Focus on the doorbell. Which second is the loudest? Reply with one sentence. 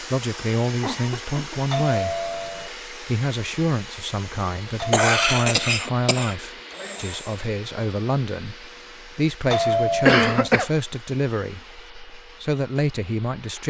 The loudest moment of the doorbell is at 10 seconds.